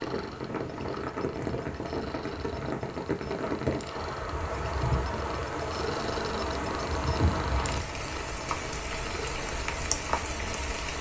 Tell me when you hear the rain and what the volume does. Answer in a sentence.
You can hear the rain from 0.0 to 10.9 s, at a steady volume.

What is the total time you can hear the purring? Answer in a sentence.
You can hear the purring for 11 seconds altogether.